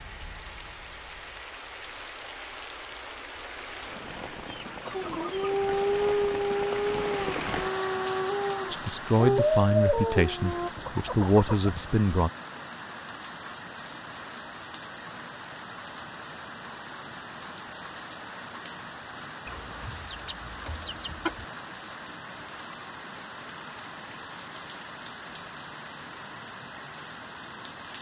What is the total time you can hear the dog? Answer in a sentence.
The dog can be heard for 6 seconds in total.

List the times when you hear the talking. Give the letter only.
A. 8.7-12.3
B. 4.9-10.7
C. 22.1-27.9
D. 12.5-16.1
A.